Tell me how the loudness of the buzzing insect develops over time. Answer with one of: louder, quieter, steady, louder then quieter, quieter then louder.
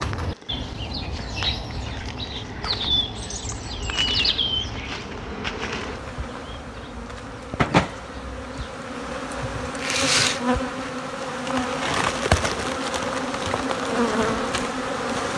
louder.